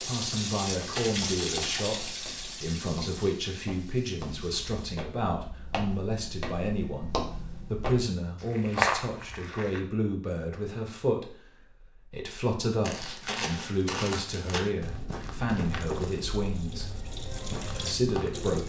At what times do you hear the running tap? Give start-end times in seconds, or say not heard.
0.0-5.0, 15.7-18.6.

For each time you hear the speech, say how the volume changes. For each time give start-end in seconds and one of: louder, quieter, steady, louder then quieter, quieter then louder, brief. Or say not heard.
0.0-16.9 steady
17.8-18.6 brief.